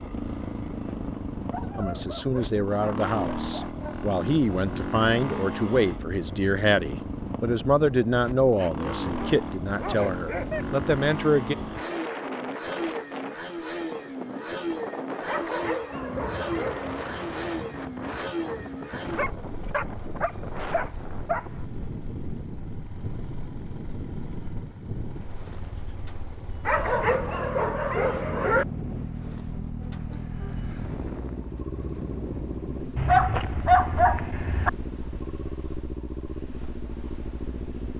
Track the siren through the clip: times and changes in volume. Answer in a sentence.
You can't hear the siren here.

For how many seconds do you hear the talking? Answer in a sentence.
You can hear the talking for 10 seconds altogether.